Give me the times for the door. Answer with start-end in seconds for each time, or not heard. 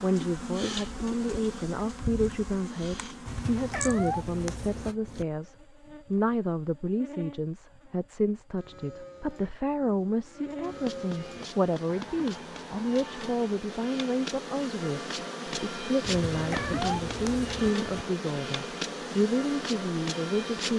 not heard.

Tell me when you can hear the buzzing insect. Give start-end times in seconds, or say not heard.
0.0-20.7.